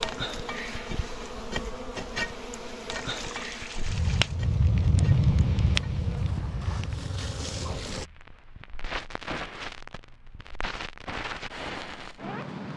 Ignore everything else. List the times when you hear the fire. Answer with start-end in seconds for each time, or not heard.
3.8-12.7.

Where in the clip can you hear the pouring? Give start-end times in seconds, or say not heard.
2.9-4.4.